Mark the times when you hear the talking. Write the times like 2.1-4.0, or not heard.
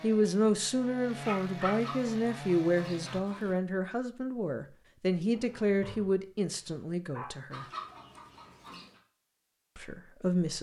0.0-7.7, 9.8-10.5.